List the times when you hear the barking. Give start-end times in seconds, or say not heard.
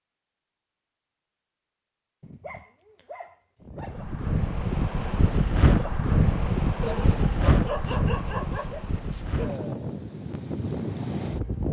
2.2-4.2, 6.8-9.6.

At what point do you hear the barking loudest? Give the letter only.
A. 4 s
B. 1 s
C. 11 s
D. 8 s
D.